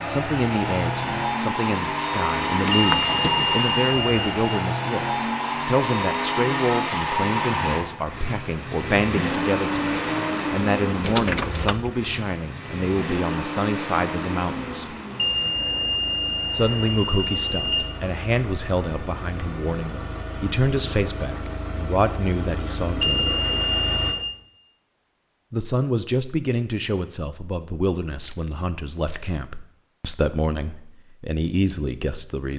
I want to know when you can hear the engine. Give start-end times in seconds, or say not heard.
0.0-24.1.